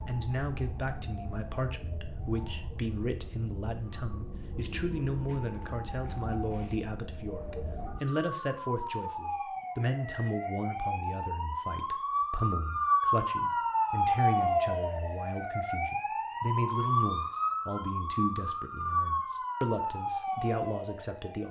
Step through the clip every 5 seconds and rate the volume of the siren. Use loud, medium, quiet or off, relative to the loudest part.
quiet, medium, loud, loud, medium.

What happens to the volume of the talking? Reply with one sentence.
The volume of the talking stays about the same.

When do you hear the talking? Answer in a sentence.
You can hear the talking from 0.1 to 21.4 s.